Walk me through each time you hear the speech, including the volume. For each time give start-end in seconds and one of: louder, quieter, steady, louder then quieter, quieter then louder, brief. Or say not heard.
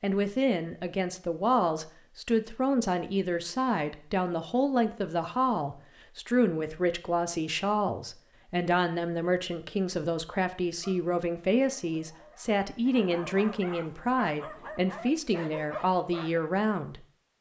0.0-17.1 steady.